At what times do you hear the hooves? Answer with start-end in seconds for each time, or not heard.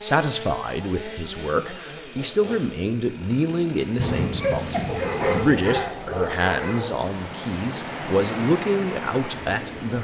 not heard.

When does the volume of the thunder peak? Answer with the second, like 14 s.
4 s.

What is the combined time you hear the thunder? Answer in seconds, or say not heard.
2 s.